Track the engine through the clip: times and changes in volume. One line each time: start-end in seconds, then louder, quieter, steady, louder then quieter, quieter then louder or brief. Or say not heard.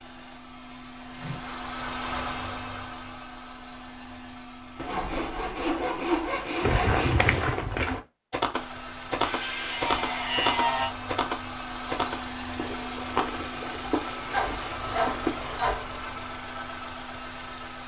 0.0-5.5 louder then quieter
8.5-17.8 steady.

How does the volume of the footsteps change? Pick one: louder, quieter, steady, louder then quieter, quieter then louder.
quieter.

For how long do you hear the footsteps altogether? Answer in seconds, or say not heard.
9 s.